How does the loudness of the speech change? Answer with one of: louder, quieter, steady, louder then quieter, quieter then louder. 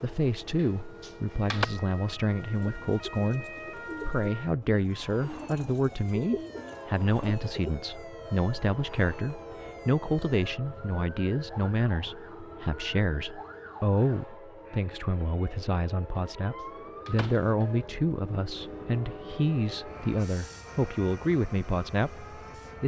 steady.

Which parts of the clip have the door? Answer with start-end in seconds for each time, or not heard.
0.6-1.6, 16.6-17.6.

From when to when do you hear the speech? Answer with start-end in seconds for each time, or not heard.
0.0-22.8.